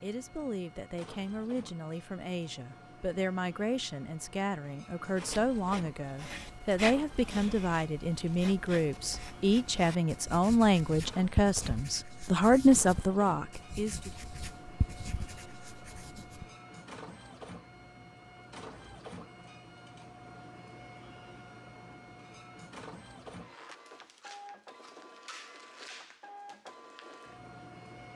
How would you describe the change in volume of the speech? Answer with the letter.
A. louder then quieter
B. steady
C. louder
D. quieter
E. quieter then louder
C.